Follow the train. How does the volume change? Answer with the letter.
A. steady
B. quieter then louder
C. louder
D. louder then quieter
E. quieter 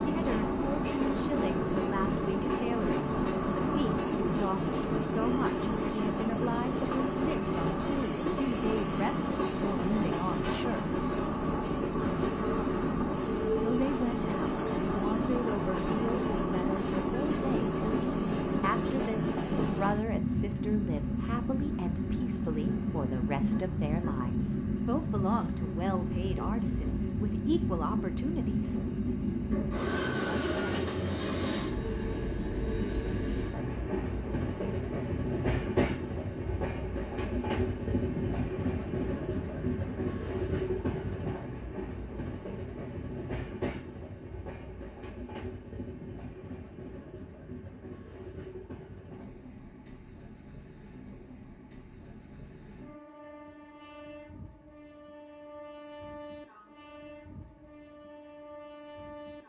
E.